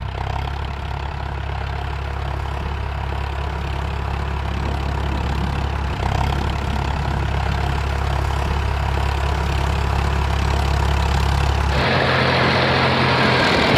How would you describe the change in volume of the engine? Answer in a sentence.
The loudness of the engine goes up.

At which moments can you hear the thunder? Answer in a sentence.
The thunder can be heard from 4.5 to 7.9 s.